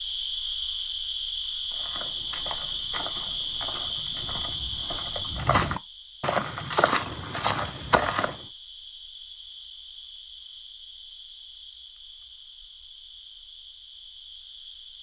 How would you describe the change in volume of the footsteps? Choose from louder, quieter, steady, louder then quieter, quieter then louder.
louder.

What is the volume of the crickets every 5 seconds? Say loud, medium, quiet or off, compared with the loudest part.
loud, medium, quiet.